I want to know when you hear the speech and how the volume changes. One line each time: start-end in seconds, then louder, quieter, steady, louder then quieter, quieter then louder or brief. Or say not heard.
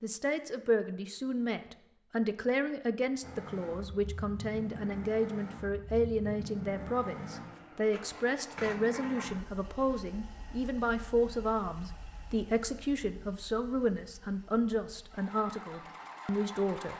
0.0-16.9 steady.